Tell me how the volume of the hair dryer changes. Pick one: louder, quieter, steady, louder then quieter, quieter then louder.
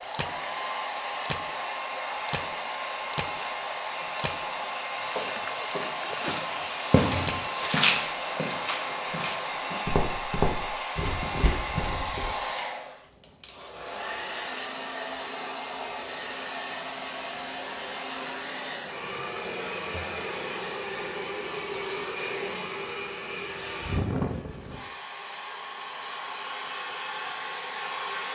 steady.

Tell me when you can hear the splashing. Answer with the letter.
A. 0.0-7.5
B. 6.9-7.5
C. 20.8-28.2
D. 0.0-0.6
A.